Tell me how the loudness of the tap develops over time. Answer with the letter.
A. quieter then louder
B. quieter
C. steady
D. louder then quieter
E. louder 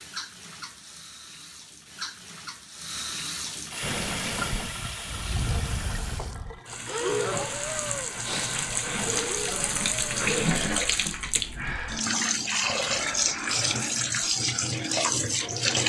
E.